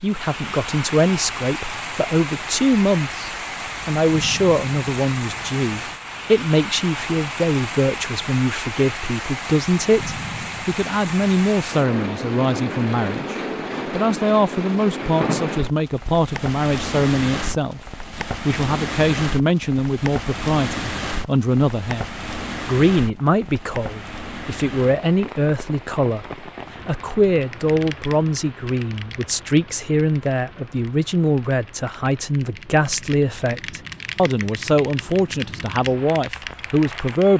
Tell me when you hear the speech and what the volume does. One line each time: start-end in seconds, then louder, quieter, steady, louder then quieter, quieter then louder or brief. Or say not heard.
0.0-37.3 steady.